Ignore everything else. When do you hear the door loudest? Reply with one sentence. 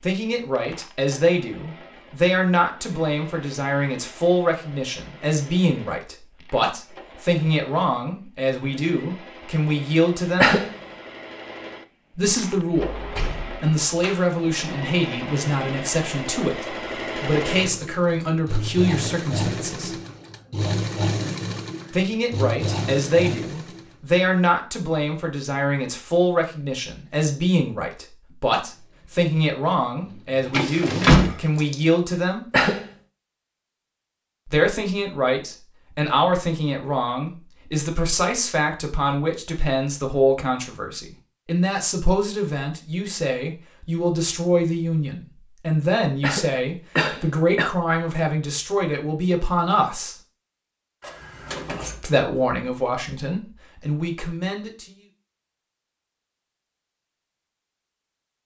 The volume of the door peaks at 31 seconds.